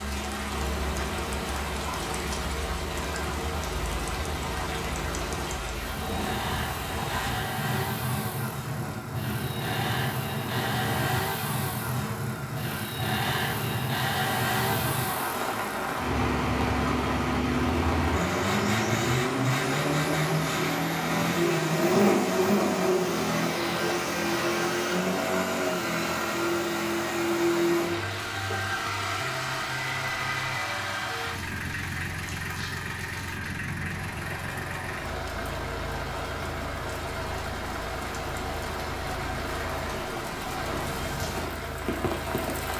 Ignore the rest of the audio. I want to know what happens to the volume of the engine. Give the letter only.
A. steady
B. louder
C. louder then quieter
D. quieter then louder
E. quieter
C.